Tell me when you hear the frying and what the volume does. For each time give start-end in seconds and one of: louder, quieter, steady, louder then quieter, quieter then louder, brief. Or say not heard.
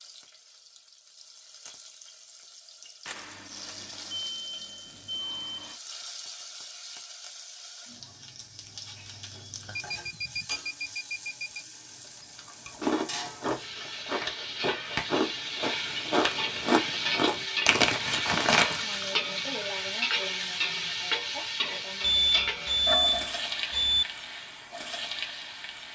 0.0-25.9 louder.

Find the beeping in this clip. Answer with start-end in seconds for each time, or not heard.
3.0-5.8, 9.7-11.7, 22.0-24.1.